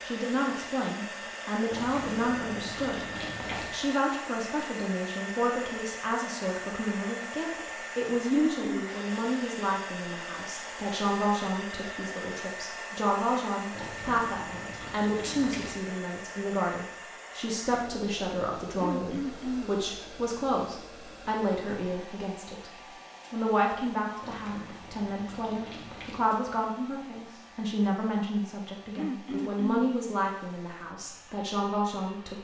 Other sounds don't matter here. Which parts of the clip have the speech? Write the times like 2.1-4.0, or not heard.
0.0-32.3.